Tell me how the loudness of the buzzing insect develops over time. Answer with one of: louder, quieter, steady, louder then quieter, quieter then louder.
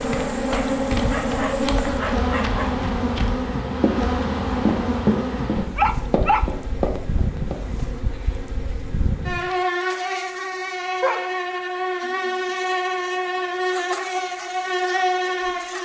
quieter then louder.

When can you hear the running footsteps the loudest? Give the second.
5 s.